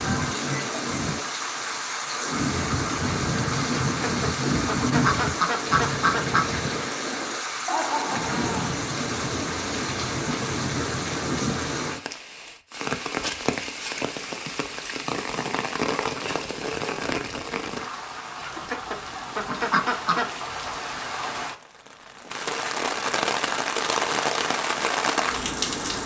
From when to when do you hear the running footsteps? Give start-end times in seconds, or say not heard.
not heard.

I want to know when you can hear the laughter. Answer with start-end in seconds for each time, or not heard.
7.7-8.7.